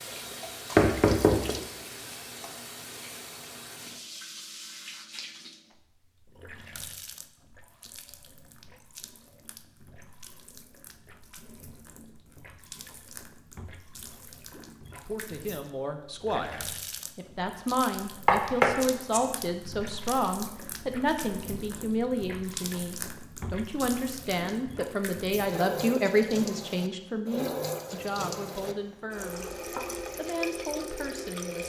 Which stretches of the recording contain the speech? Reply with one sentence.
The speech can be heard from 15.1 to 29.4 s and from 30.1 to 31.6 s.